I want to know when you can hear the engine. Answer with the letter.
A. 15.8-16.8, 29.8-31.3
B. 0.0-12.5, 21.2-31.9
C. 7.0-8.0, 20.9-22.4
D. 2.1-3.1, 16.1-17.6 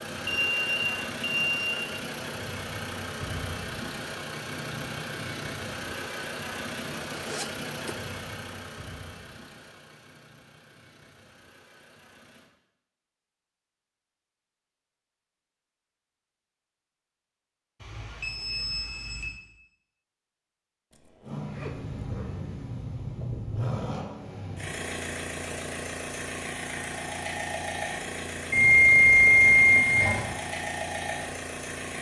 B.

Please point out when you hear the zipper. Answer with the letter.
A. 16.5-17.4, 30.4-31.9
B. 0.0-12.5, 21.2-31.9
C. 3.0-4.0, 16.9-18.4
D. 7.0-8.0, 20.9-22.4
D.